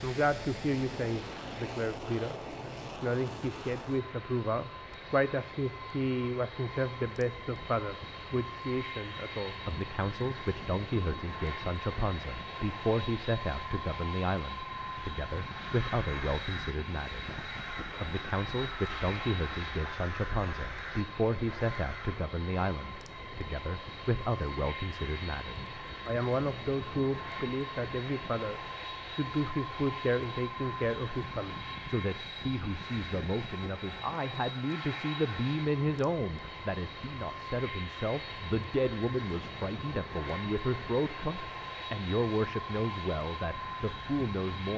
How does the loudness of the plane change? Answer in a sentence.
The volume of the plane stays about the same.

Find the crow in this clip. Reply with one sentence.
You can hear the crow from 15.3 to 22.2 s.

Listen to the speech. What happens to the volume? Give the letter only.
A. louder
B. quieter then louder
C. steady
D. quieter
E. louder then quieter
C.